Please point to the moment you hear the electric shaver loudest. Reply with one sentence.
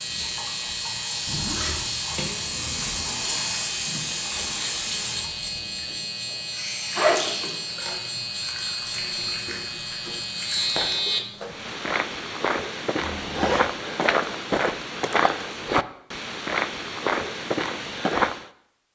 The volume of the electric shaver peaks at 11 seconds.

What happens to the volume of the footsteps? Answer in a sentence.
The volume of the footsteps stays about the same.